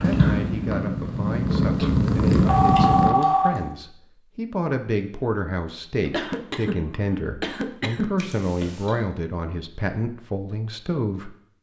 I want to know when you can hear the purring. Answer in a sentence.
You can hear the purring from 0.0 to 3.1 s.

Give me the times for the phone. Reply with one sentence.
You can hear the phone from 2.3 to 3.6 s and from 8.2 to 8.9 s.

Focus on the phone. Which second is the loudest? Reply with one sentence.
The loudest moment of the phone is at 3 seconds.